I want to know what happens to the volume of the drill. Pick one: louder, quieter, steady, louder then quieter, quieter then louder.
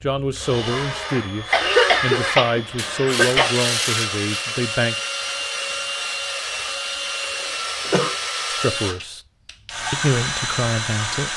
steady.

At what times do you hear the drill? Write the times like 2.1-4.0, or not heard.
0.1-11.3.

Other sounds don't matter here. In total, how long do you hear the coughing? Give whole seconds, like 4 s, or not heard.
3 s.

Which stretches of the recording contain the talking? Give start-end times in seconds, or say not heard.
0.0-5.0, 8.4-9.2, 9.9-11.3.